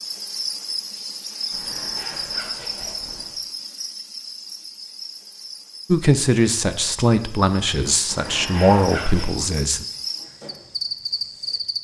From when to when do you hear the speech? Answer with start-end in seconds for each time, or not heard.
5.9-9.8.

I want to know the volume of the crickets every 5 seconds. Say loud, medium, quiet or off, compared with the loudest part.
loud, medium, loud.